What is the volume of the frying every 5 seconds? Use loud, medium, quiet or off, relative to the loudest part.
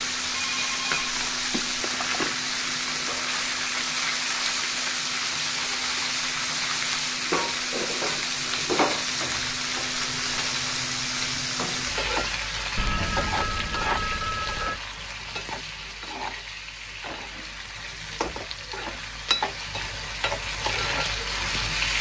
loud, loud, loud, medium, loud.